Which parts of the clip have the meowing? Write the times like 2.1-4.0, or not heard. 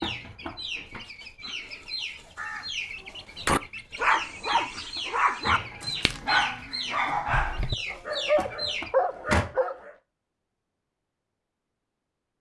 not heard.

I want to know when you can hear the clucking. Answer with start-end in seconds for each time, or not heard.
0.0-8.9.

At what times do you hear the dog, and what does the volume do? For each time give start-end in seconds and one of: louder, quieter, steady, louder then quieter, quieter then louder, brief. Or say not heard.
3.4-9.9 steady.